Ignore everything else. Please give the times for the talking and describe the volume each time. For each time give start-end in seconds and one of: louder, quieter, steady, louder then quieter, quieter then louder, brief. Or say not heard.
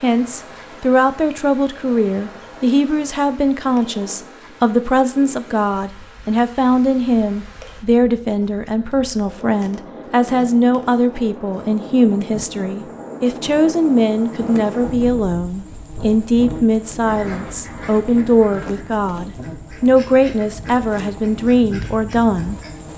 0.0-22.9 steady.